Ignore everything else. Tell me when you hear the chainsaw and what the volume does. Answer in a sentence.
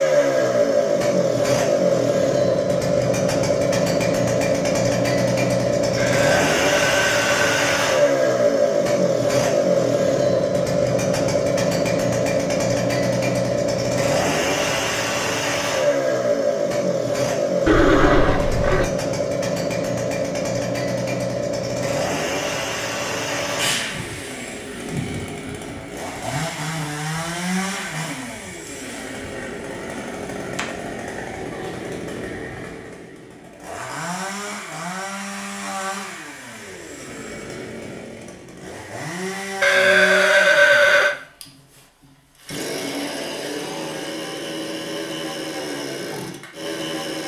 The chainsaw can be heard from 0.0 to 47.2 s, getting quieter.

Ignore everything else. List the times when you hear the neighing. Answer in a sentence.
The neighing can be heard from 6.0 to 7.8 s, from 17.6 to 18.9 s and from 39.6 to 41.1 s.